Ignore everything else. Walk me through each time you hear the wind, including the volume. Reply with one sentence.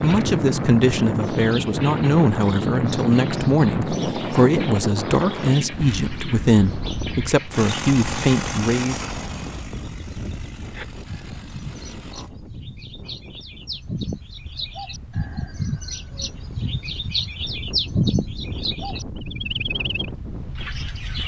You can hear the wind from 0.0 to 21.2 s, getting quieter then louder.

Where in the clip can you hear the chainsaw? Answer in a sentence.
The chainsaw can be heard from 7.5 to 12.3 s.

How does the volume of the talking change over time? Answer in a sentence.
The volume of the talking stays about the same.